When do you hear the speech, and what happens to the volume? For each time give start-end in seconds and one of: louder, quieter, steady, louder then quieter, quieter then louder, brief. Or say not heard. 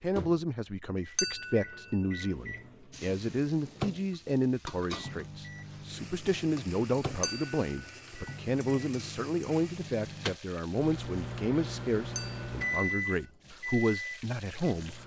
0.0-15.0 steady.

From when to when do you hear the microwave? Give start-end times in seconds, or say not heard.
0.0-15.0.